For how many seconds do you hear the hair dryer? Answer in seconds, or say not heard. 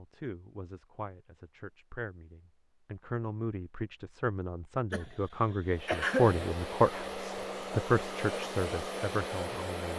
4 s.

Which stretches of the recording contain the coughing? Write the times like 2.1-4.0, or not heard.
4.9-6.5.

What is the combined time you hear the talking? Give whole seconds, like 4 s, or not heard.
10 s.